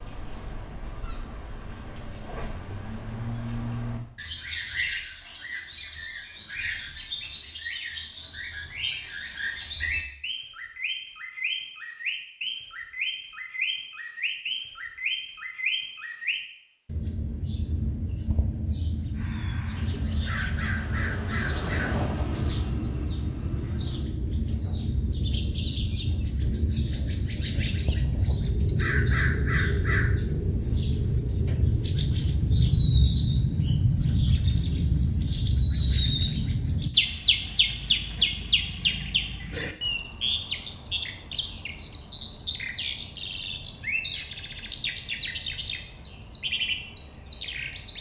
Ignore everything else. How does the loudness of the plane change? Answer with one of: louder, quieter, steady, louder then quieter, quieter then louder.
louder then quieter.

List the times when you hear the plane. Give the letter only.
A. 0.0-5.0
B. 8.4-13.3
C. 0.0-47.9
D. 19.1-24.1
D.